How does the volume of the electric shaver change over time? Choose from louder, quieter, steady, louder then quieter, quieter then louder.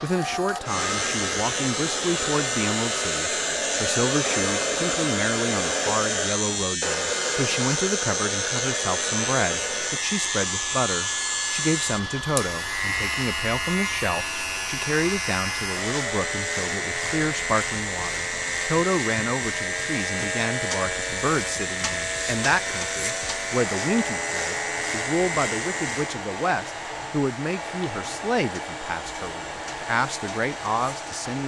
quieter.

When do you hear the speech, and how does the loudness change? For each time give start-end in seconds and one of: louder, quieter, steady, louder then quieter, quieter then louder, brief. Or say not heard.
0.0-31.4 steady.